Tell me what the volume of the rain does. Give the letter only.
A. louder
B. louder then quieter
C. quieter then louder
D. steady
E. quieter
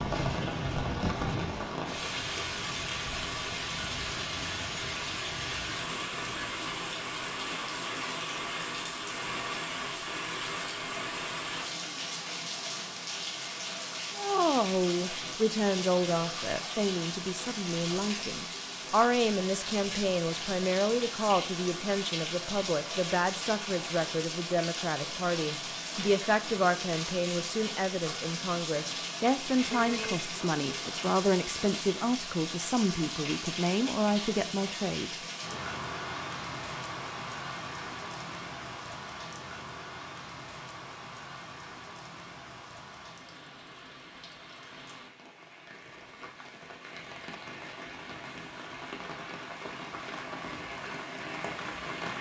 E.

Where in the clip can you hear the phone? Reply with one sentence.
You can hear the phone from 29.8 to 30.3 s.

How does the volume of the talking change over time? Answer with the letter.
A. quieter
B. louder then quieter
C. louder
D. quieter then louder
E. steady
E.